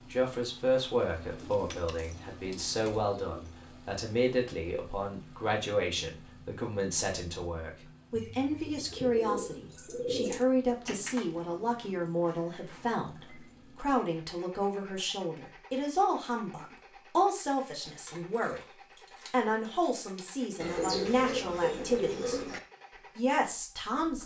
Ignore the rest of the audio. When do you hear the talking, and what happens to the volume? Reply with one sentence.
The talking can be heard from 0.1 to 22.5 s, at a steady volume; and briefly from 23.1 to 24.2 s.